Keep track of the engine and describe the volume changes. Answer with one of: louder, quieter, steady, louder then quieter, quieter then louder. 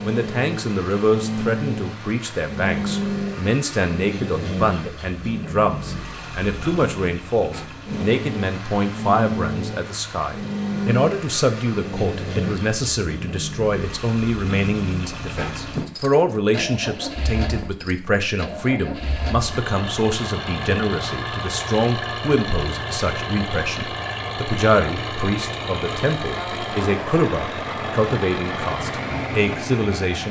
steady.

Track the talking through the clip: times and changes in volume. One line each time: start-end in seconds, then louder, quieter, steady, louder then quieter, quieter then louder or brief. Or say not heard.
0.0-30.2 steady.